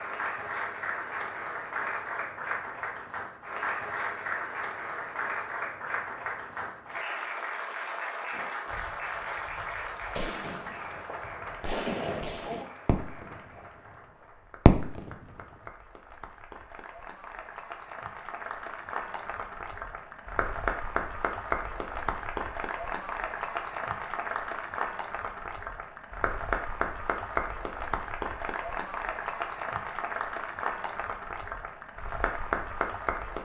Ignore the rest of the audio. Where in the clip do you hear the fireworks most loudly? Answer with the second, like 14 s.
15 s.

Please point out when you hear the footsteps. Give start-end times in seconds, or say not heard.
not heard.